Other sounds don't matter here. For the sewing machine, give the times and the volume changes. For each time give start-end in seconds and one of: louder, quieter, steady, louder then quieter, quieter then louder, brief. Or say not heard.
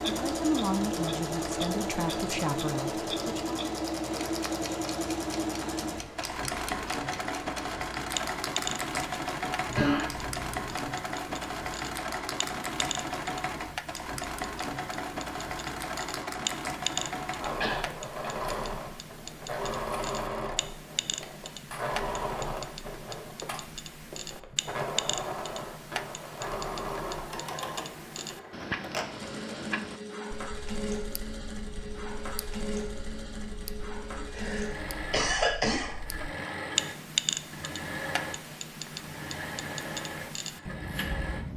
0.0-41.5 quieter.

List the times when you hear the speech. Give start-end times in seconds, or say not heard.
0.1-3.5.